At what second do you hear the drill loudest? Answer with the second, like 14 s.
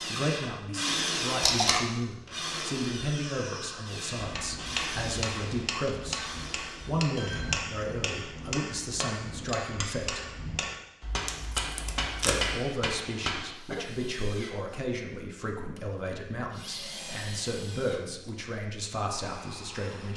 1 s.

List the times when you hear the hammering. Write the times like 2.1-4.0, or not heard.
4.2-13.6.